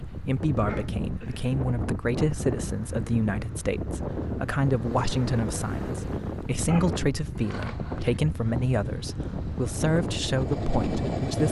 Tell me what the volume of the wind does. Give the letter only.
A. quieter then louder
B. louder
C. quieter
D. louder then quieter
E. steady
E.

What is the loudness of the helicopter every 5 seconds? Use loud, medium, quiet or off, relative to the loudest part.
off, quiet, loud.